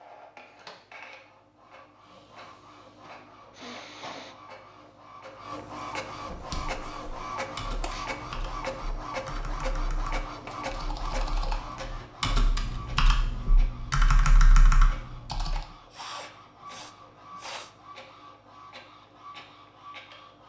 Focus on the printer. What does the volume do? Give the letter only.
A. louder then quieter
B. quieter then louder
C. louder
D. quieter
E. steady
A.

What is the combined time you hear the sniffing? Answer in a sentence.
You can hear the sniffing for 4 seconds altogether.